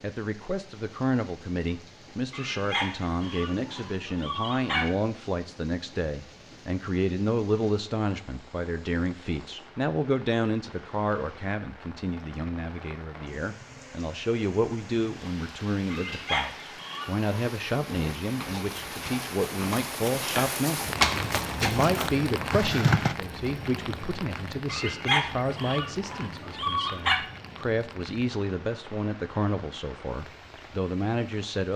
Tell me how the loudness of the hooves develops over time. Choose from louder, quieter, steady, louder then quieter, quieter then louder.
louder then quieter.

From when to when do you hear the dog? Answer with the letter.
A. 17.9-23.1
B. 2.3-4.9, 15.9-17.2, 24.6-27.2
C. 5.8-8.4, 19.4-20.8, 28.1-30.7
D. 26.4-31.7
B.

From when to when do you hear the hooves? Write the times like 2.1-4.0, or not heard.
17.9-23.1.